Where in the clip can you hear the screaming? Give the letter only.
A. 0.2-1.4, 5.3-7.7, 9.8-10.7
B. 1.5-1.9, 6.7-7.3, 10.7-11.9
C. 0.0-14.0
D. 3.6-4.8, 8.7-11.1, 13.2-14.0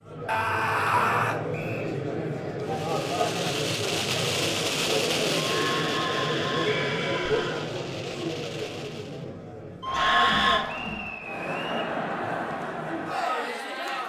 A.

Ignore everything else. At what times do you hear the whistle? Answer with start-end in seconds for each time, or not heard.
1.5-1.9, 6.7-7.3, 10.7-11.9.